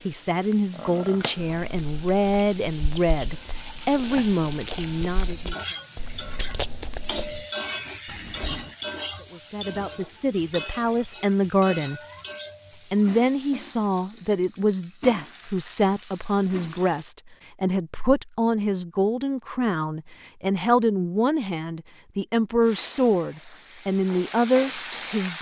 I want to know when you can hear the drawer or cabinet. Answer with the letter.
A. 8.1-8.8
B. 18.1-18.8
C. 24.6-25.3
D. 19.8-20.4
A.